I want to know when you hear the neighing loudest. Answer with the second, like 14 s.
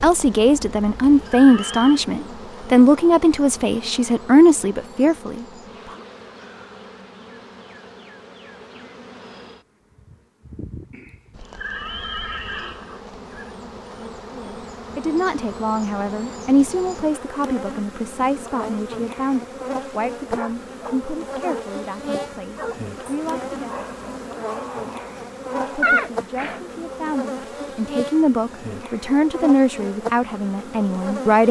26 s.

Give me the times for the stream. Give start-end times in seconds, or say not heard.
not heard.